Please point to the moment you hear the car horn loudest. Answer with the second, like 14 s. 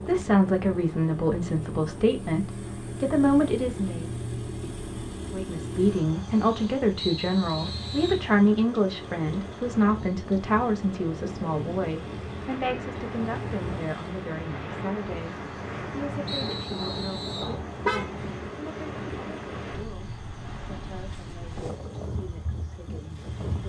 18 s.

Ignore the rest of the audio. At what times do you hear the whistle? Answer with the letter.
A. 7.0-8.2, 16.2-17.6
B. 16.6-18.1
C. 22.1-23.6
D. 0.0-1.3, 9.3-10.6
A.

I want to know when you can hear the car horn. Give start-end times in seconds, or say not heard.
16.6-18.1.